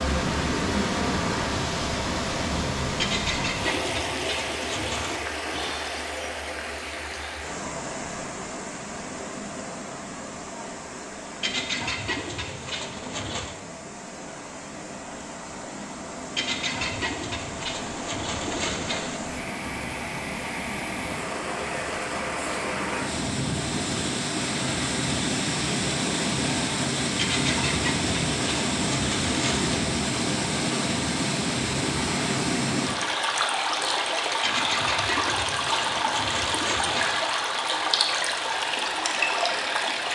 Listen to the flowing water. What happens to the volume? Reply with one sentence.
The loudness of the flowing water goes down, then up.